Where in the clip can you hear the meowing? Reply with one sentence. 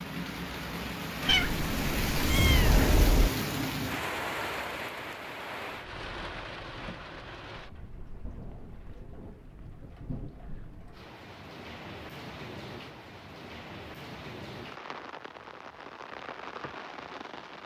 The meowing can be heard from 1.2 to 3.3 s.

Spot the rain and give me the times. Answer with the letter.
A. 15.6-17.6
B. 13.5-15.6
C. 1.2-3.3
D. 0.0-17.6
D.